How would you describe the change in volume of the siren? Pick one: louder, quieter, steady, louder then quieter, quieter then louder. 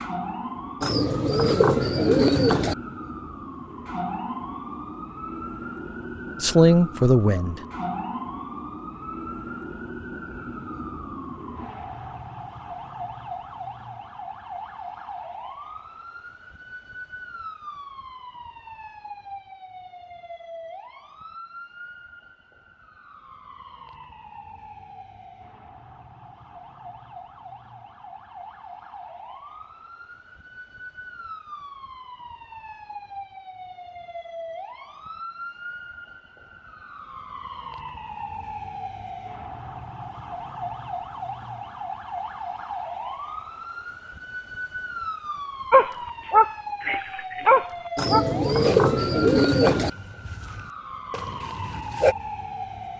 quieter then louder.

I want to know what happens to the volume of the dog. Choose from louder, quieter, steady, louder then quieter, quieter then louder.
quieter.